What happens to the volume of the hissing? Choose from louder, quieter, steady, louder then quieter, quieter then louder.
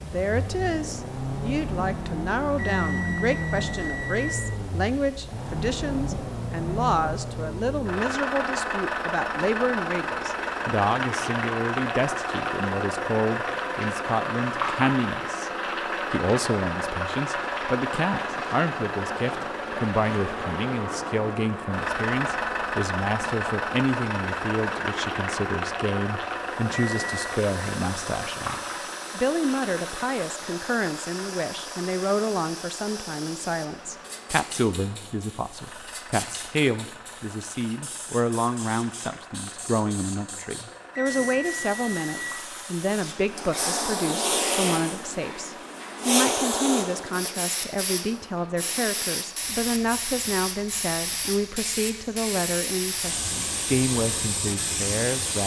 louder.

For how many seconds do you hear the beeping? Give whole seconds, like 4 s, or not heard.
4 s.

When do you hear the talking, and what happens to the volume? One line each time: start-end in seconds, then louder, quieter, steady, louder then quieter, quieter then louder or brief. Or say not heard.
0.0-15.5 steady
16.1-55.4 steady.